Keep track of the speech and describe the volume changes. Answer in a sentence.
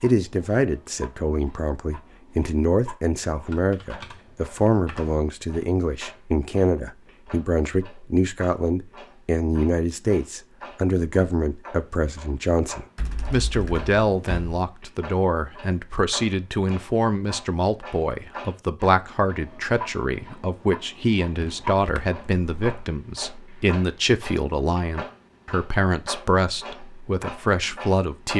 The volume of the speech stays about the same.